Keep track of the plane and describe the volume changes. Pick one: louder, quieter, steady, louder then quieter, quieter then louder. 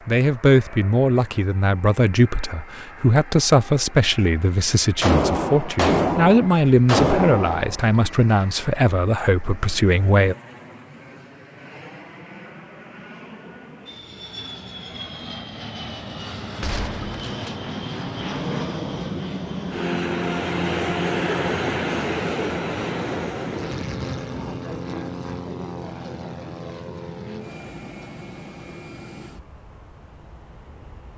louder then quieter.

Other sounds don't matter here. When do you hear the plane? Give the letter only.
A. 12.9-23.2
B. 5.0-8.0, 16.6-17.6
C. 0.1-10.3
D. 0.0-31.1
D.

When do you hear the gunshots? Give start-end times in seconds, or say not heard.
5.0-8.0, 16.6-17.6.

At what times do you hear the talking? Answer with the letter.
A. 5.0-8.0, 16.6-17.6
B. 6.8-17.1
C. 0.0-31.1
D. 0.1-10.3
D.